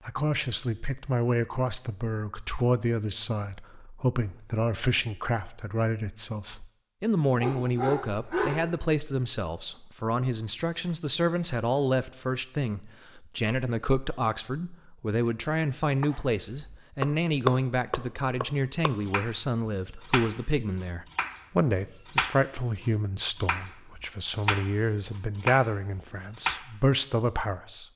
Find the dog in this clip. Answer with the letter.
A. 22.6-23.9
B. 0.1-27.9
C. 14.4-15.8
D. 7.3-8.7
D.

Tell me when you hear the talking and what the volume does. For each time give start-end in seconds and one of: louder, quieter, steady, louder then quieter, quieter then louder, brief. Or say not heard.
0.1-27.9 steady.